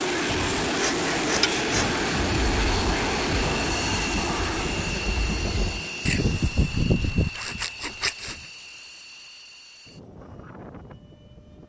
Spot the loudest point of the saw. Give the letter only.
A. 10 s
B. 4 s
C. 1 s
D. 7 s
D.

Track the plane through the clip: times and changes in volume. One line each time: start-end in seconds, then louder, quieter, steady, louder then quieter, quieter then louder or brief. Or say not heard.
0.0-11.6 quieter.